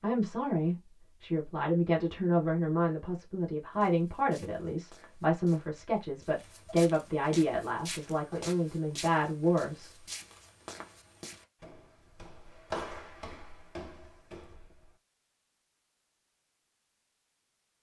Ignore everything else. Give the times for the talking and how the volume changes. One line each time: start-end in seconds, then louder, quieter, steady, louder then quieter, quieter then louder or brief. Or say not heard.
0.0-10.1 steady.